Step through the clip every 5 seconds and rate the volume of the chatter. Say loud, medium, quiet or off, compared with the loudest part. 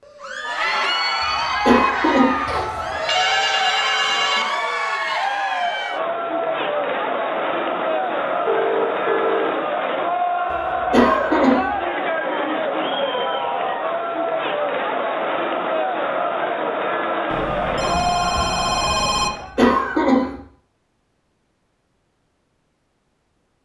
loud, loud, loud, loud, off.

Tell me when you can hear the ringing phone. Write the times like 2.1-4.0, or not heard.
2.5-4.5, 8.0-9.6, 17.3-19.3.